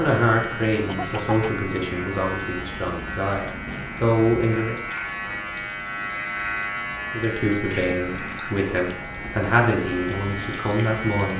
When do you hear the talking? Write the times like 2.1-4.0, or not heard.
0.0-4.8, 7.1-11.3.